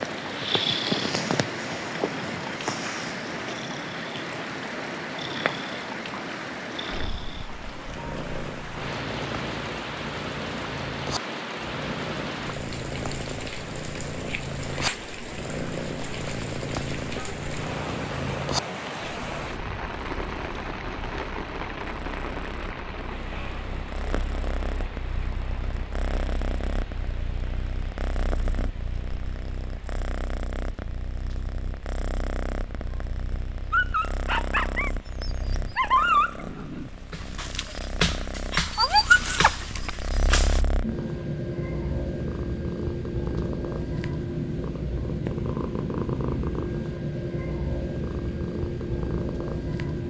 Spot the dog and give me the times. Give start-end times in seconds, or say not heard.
33.7-40.6.